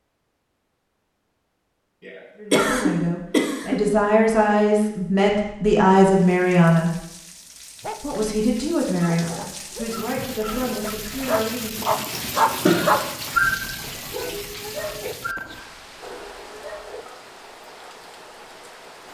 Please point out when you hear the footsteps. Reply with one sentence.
The footsteps can't be heard in this clip.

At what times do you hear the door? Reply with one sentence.
The door can't be heard in this clip.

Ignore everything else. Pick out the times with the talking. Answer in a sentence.
The talking can be heard from 2.4 to 6.9 s and from 8.0 to 11.9 s.